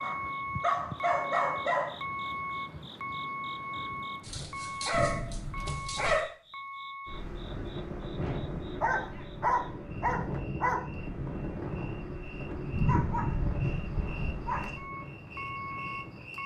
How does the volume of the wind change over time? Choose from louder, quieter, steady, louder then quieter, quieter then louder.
quieter.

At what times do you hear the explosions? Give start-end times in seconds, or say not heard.
4.9-6.1.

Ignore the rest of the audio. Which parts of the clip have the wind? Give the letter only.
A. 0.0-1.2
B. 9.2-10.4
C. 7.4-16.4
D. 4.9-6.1
C.